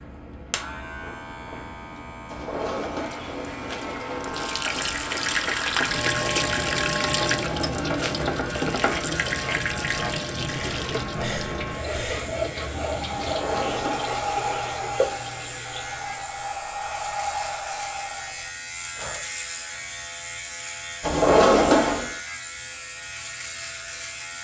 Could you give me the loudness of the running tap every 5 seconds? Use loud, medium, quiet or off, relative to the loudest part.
medium, loud, medium, medium, off.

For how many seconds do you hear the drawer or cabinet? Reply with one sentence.
You can hear the drawer or cabinet for 4 seconds altogether.